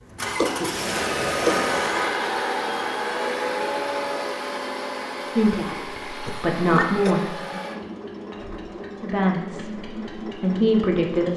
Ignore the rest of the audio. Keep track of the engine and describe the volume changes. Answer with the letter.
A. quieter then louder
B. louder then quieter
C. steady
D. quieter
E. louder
D.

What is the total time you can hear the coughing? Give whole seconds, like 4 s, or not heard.
2 s.